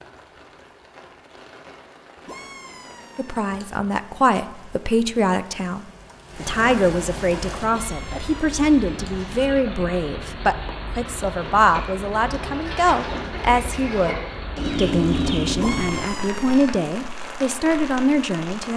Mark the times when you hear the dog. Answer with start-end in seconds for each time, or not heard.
not heard.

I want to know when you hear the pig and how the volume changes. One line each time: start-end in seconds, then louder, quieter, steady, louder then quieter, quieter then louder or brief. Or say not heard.
not heard.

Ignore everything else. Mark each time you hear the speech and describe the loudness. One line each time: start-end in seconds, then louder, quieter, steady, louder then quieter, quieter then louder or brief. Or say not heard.
3.1-18.7 steady.